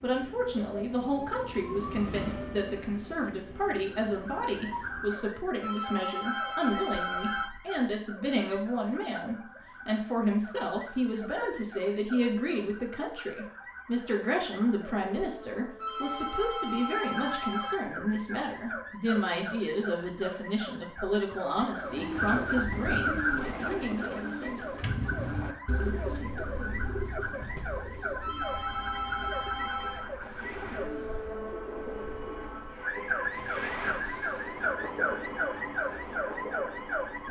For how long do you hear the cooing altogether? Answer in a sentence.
You can hear the cooing for 11 seconds altogether.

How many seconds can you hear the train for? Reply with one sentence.
The train can be heard for 14 seconds in total.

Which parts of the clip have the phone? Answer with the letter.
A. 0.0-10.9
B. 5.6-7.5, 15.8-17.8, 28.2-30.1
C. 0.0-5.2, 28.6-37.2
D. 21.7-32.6
B.